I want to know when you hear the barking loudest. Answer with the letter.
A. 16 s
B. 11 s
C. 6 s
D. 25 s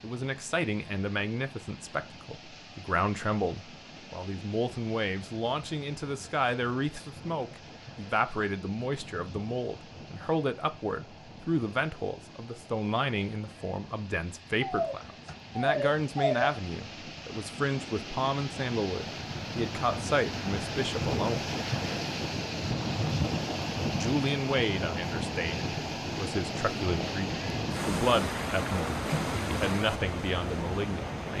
A.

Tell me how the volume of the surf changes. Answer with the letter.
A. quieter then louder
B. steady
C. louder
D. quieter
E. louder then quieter
C.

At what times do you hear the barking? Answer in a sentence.
The barking can be heard from 14.6 to 16.6 s.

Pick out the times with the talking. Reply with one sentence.
The talking can be heard from 0.0 to 21.4 s and from 23.9 to 31.3 s.